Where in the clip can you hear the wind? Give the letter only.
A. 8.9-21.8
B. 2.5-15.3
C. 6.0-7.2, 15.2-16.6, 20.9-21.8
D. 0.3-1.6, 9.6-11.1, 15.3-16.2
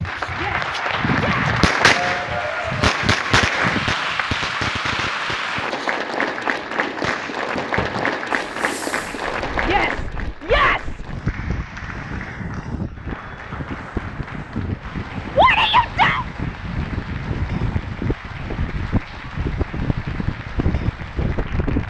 A.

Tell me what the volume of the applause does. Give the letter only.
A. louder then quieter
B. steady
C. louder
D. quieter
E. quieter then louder
D.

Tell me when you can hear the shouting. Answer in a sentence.
The shouting can be heard from 0.3 to 1.6 s, from 9.6 to 11.1 s and from 15.3 to 16.2 s.